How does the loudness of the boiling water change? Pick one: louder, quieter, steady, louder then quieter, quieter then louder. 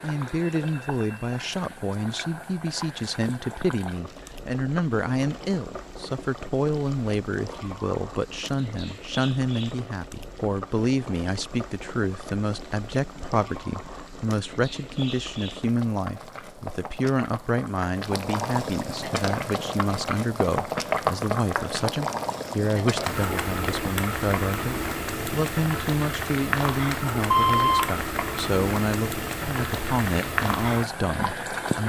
louder.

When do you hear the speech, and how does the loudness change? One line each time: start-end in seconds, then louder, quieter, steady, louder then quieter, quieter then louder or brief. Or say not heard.
0.0-31.8 steady.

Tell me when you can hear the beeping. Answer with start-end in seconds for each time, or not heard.
27.3-28.0.